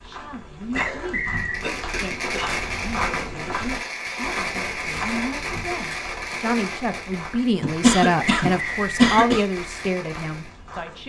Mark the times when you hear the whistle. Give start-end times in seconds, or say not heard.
0.8-1.6, 8.2-9.2.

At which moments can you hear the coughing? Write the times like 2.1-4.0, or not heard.
0.7-2.5, 7.6-9.4.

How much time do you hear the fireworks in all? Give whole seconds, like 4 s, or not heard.
9 s.